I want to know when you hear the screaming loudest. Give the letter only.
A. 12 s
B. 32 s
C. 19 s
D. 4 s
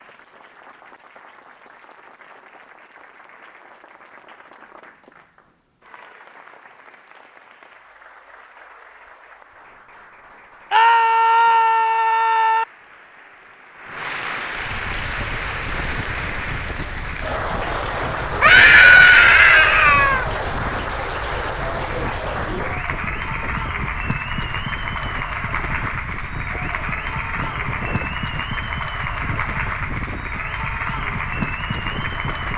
C.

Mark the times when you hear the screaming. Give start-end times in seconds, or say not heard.
10.7-12.7, 18.4-20.2.